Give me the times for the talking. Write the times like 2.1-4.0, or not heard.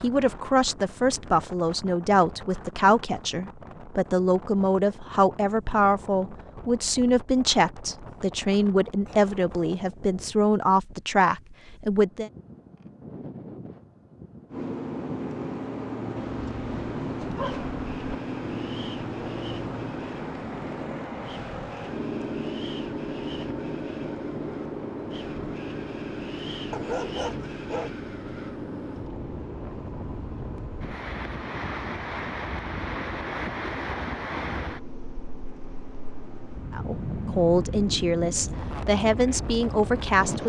0.0-12.3, 36.7-40.4.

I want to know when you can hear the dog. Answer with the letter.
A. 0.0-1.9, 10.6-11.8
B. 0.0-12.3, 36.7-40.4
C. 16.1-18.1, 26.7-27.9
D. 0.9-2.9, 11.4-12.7
C.